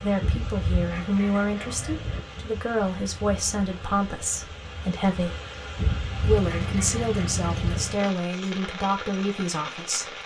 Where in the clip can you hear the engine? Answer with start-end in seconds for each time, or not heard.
6.1-8.1.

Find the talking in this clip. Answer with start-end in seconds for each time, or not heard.
0.0-5.3, 6.2-10.2.